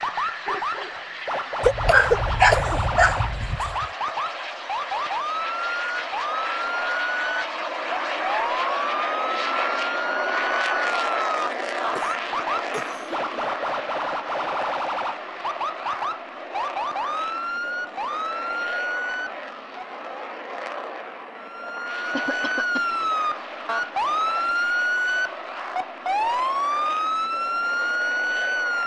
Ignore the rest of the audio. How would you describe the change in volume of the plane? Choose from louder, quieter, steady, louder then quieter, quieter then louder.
louder then quieter.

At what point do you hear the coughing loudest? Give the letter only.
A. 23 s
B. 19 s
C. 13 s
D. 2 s
D.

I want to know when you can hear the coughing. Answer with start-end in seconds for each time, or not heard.
1.6-3.6, 11.9-13.4, 22.1-22.9.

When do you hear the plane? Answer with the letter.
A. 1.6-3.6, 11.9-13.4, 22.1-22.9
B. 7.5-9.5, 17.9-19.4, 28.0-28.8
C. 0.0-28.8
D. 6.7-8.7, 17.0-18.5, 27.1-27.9
C.